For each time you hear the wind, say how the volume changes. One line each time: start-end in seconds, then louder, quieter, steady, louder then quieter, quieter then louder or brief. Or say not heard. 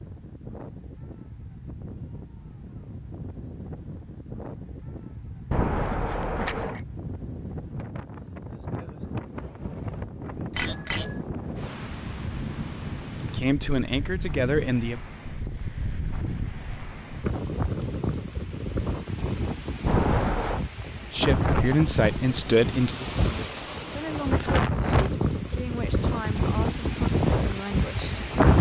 0.0-28.5 louder.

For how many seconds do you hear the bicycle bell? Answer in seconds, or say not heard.
3 s.